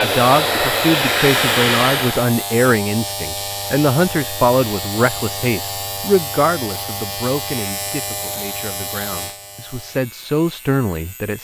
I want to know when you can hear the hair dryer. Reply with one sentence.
The hair dryer can be heard from 0.0 to 2.3 s.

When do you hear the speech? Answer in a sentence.
The speech can be heard from 0.0 to 11.4 s.